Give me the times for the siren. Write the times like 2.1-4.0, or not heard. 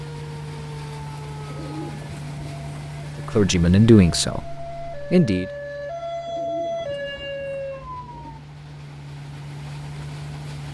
0.0-8.4.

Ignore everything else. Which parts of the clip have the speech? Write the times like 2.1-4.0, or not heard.
3.2-5.5.